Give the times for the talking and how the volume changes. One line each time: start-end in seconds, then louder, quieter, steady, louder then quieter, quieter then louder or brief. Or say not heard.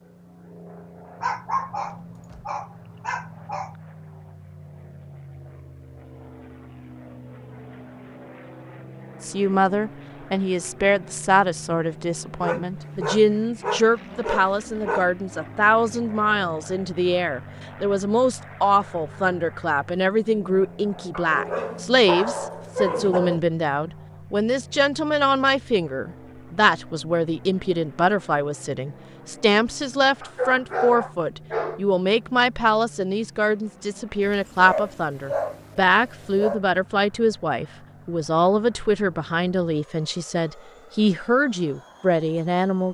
9.2-42.8 steady.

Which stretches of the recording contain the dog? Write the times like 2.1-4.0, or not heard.
1.2-3.8, 12.4-15.1, 21.1-23.4, 30.2-31.9, 34.2-36.6.